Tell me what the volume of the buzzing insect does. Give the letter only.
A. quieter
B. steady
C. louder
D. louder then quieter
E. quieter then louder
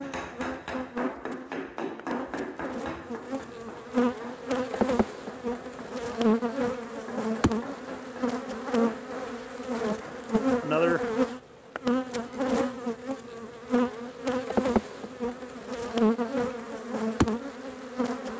C.